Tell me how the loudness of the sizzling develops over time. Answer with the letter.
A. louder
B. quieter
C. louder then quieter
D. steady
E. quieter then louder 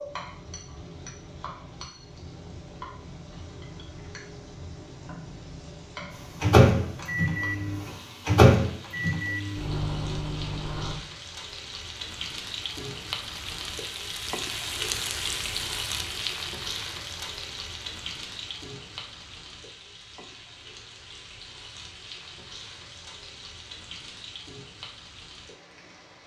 C.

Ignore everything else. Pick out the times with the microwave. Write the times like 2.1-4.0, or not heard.
6.4-10.9.